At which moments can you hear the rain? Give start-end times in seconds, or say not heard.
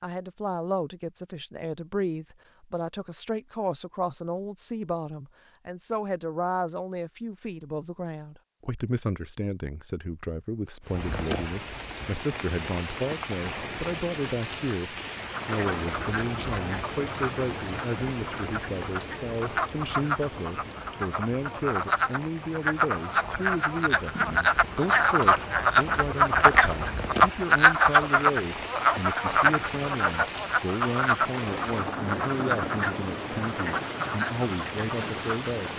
10.8-35.7.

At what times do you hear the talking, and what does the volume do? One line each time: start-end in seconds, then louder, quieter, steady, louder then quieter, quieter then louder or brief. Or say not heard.
0.0-35.7 steady.